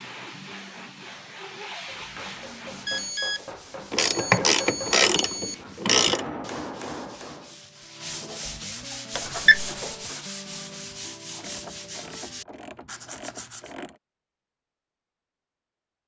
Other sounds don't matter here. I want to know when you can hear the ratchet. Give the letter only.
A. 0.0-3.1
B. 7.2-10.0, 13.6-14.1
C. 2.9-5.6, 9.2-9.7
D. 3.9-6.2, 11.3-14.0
D.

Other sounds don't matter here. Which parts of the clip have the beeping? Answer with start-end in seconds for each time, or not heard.
2.9-5.6, 9.2-9.7.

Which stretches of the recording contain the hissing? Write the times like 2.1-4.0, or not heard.
0.0-3.1.